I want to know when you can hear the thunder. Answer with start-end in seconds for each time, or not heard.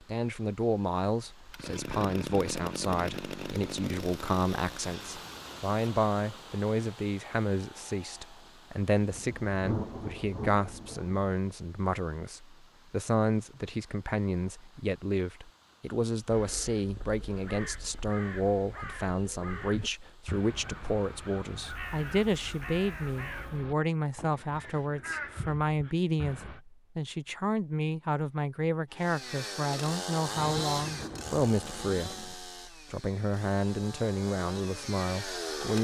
8.9-11.2, 30.4-32.4.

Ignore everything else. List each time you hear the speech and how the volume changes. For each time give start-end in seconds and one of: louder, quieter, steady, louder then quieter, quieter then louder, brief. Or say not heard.
0.0-35.8 steady.